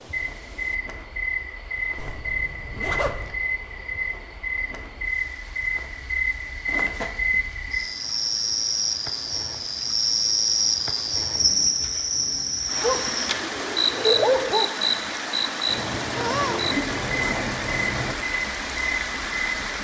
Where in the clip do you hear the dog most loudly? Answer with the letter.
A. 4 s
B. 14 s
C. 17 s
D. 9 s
B.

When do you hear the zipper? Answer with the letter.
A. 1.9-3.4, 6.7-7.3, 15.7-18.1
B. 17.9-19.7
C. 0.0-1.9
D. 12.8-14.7
A.